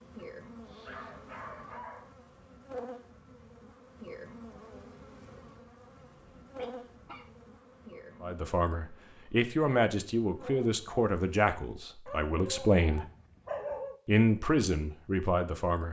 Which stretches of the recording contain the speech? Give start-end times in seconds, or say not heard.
8.2-13.1, 14.1-15.8.